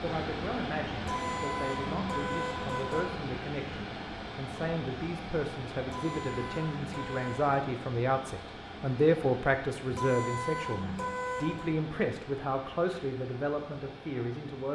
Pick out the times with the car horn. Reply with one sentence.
The car horn can be heard from 1.0 to 3.0 s, from 5.8 to 7.5 s and from 9.9 to 11.7 s.